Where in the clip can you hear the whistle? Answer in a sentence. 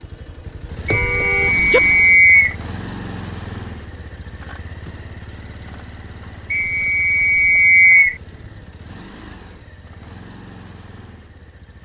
You can hear the whistle from 0.8 to 2.5 s and from 6.5 to 8.2 s.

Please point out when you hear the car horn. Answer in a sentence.
The car horn can be heard from 0.8 to 1.8 s.